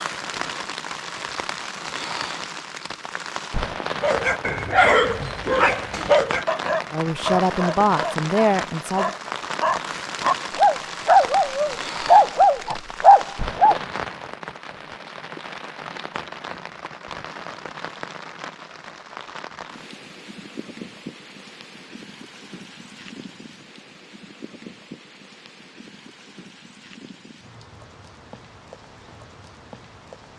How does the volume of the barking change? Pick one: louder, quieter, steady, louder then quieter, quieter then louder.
quieter then louder.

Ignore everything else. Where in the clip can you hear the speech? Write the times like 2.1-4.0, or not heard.
6.9-9.1.